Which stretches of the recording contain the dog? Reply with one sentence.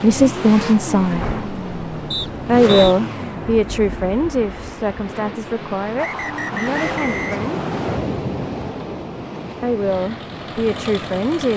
You can't hear the dog here.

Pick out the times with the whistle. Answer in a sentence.
The whistle can be heard from 2.1 to 3.0 s and from 6.0 to 8.0 s.